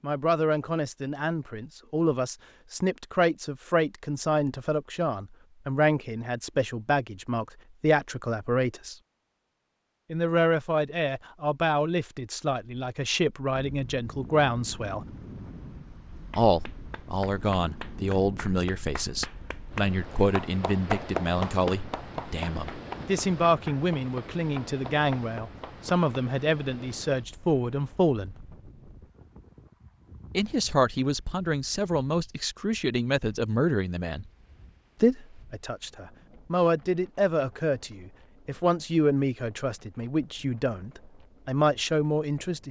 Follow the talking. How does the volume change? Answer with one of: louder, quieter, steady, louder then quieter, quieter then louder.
steady.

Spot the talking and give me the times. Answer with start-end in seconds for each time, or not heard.
0.0-8.9, 10.1-15.1, 16.4-28.4, 30.4-34.3, 35.0-42.6.